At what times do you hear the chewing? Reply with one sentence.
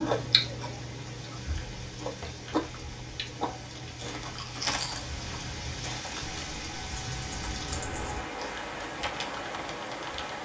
You can hear the chewing from 0.0 to 6.6 s.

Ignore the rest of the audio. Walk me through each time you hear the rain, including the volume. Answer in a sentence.
You can hear the rain from 0.0 to 10.4 s, getting louder.